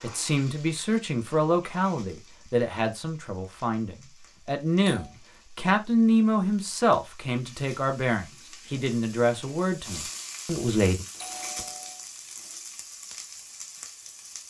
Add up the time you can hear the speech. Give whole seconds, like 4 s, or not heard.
11 s.